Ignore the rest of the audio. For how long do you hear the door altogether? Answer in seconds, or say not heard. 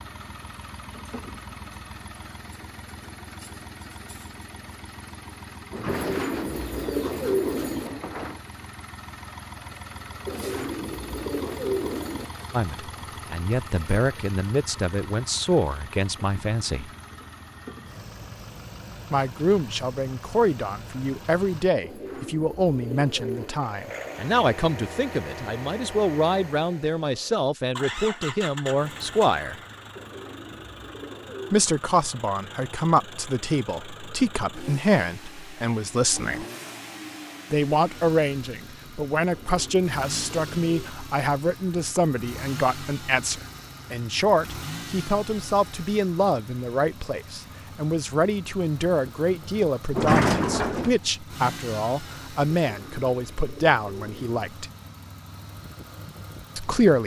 4 s.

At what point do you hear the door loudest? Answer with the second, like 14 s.
50 s.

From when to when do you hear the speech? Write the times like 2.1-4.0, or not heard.
12.5-16.9, 19.1-29.6, 31.5-36.5, 37.5-54.7, 56.5-57.0.